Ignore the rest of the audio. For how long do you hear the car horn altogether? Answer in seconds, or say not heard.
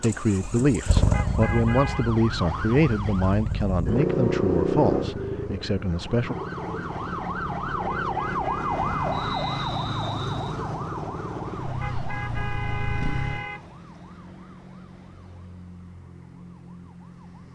5 s.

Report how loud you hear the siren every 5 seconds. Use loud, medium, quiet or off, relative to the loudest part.
medium, loud, medium, quiet.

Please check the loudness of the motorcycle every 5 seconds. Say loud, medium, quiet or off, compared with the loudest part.
loud, medium, medium, off.